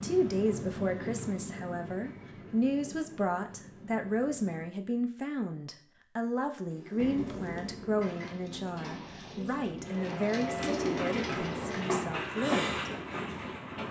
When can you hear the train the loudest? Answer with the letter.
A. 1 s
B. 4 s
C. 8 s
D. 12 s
D.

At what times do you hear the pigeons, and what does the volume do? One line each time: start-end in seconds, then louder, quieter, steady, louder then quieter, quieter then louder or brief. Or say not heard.
6.7-12.0 louder.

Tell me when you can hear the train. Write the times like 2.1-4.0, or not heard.
0.0-4.7, 7.0-13.8.